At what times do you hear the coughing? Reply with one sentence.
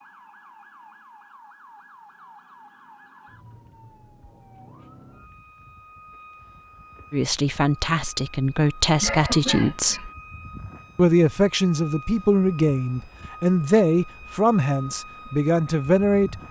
The coughing can be heard from 9.0 to 10.1 s.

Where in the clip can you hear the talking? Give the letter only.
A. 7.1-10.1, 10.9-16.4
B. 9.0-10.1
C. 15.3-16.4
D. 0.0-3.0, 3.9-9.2
A.